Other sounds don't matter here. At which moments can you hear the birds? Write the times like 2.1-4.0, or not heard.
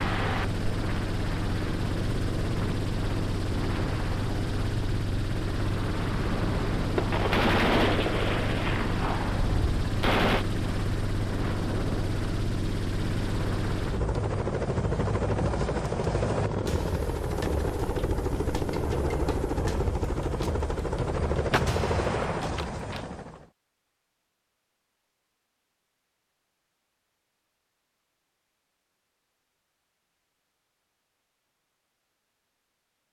not heard.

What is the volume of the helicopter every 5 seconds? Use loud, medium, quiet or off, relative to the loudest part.
loud, loud, loud, loud, loud, off, off.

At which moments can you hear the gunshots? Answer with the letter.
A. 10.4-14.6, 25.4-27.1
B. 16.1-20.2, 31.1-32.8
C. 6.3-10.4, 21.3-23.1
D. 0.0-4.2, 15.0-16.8
C.